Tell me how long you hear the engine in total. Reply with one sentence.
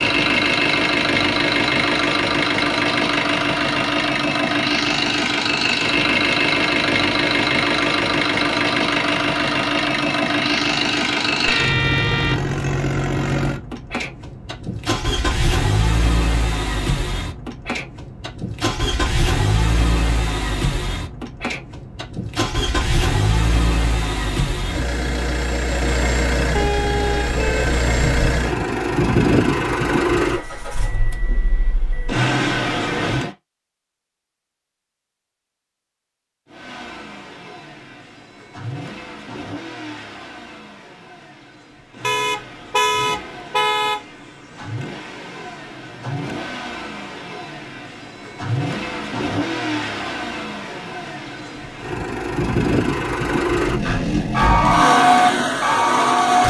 You can hear the engine for 53 seconds altogether.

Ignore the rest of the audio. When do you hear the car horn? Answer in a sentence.
The car horn can be heard from 11.4 to 12.6 s, from 26.6 to 28.3 s and from 42.0 to 44.0 s.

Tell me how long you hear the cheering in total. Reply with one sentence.
The cheering can be heard for 2 seconds in total.